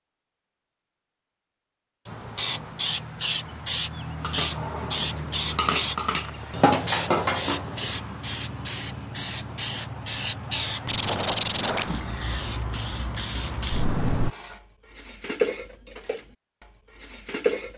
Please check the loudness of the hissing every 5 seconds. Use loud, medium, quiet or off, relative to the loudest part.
loud, loud, loud, off.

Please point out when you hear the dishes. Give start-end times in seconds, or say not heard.
4.2-7.6, 14.1-17.7.